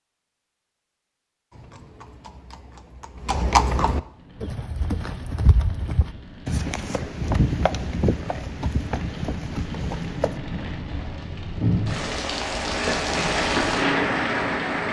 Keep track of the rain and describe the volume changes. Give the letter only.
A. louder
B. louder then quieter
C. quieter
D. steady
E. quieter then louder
A.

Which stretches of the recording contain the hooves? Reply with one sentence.
You can hear the hooves from 1.5 to 10.4 s.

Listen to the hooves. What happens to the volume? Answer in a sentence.
The loudness of the hooves goes up, then down.